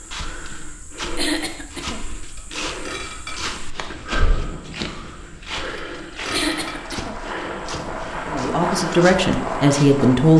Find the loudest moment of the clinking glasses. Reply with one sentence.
The loudest moment of the clinking glasses is at 6 seconds.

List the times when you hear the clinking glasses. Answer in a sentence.
The clinking glasses can be heard from 2.4 to 3.4 s and from 5.8 to 6.8 s.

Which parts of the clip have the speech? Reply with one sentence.
The speech can be heard from 8.3 to 10.3 s.